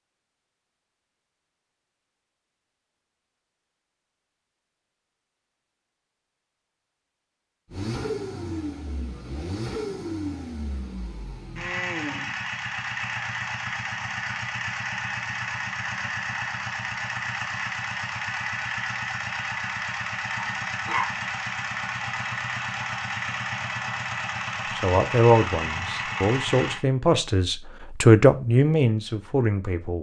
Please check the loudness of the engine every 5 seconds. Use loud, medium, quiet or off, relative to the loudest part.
off, loud, loud, loud, loud, loud.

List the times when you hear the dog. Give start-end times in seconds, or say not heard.
20.4-21.1.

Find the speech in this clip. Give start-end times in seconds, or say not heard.
24.7-29.9.